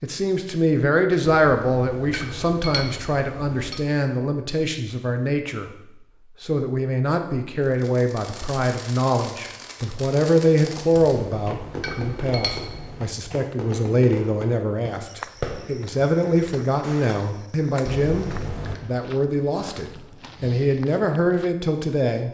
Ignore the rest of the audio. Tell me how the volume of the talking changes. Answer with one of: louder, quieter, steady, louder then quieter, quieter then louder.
steady.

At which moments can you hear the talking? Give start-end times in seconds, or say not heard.
0.0-5.8, 6.4-22.2.